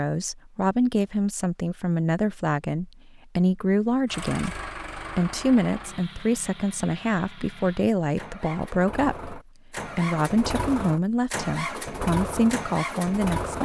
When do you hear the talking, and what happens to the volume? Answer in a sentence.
The talking can be heard from 0.0 to 13.6 s, at a steady volume.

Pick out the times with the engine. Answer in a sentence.
You can hear the engine from 4.0 to 13.6 s.